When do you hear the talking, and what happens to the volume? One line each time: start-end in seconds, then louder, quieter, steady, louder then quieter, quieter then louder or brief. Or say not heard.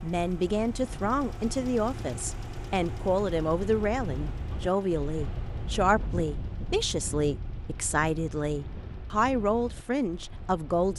0.0-10.9 steady.